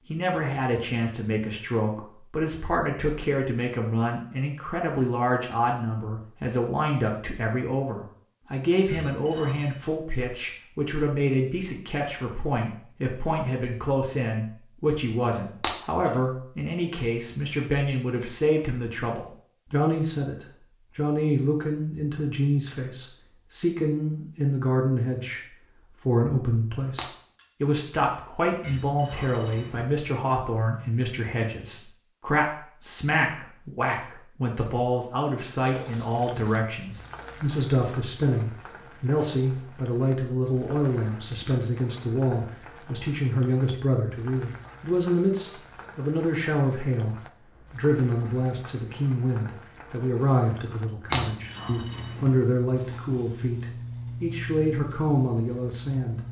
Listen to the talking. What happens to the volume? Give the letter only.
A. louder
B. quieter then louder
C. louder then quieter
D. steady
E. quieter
D.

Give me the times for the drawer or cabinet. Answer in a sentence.
The drawer or cabinet can't be heard in this clip.